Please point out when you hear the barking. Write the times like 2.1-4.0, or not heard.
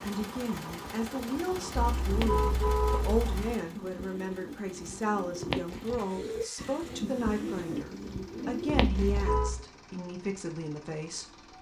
not heard.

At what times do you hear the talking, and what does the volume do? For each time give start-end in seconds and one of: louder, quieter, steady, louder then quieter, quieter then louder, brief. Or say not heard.
0.0-11.4 steady.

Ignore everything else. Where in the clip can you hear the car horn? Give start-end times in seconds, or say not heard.
1.8-3.5, 8.9-9.7.